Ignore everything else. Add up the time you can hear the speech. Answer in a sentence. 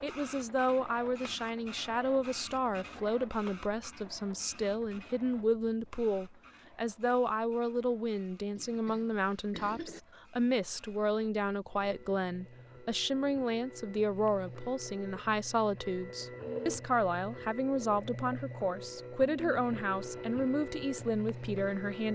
The speech can be heard for 22 seconds in total.